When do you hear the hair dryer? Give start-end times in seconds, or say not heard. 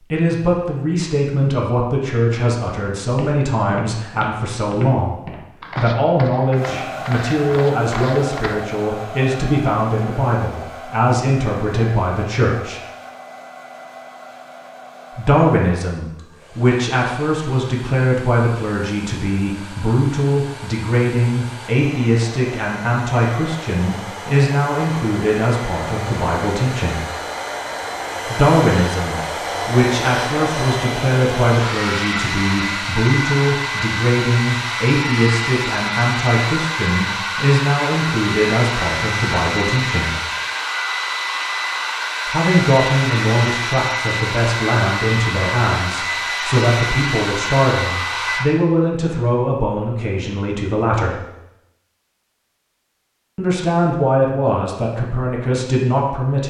6.5-48.5.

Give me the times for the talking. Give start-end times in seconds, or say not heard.
0.1-12.8, 15.2-27.1, 28.2-40.2, 42.2-51.2, 53.4-56.4.